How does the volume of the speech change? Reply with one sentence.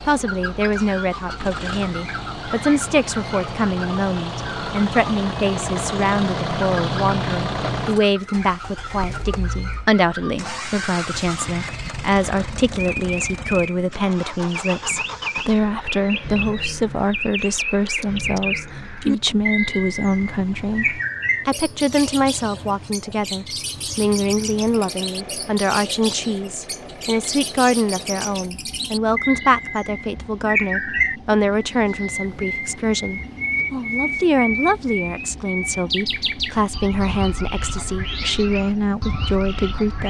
The volume of the speech stays about the same.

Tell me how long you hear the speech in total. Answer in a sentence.
You can hear the speech for 40 seconds altogether.